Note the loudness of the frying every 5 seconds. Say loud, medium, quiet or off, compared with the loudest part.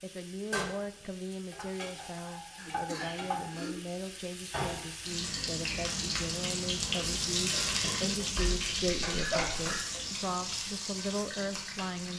medium, loud, medium.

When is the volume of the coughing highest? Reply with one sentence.
The loudest moment of the coughing is at 9 seconds.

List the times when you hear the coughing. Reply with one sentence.
You can hear the coughing from 2.5 to 3.8 s and from 7.8 to 9.8 s.